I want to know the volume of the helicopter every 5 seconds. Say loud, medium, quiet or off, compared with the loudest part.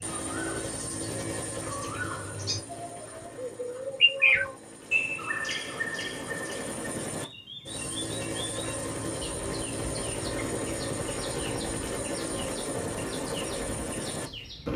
medium, loud, loud.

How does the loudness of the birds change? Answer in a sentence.
The volume of the birds goes up, then down.